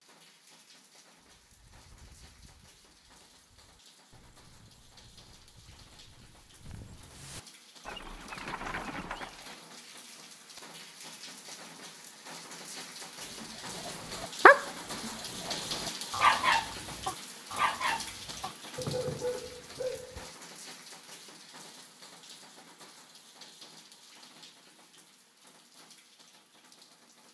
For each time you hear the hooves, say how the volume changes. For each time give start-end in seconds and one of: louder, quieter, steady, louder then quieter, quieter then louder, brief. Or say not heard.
1.2-9.6 louder.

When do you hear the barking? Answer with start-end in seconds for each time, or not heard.
13.4-20.3.